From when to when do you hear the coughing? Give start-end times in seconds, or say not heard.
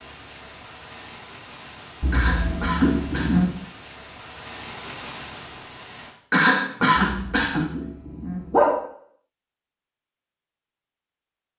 2.1-3.5, 6.3-7.7.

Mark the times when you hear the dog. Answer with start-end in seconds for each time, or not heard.
2.0-3.5, 7.0-8.8.